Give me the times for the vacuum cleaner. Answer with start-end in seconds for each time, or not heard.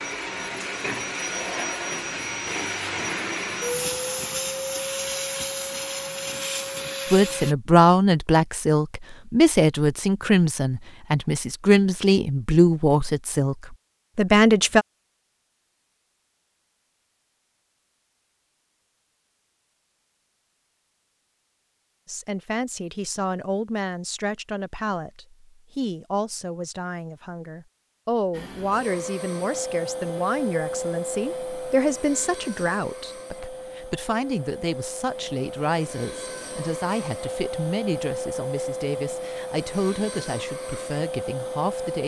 0.0-7.5, 28.3-42.0.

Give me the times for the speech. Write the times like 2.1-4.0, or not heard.
7.1-14.8, 22.1-42.0.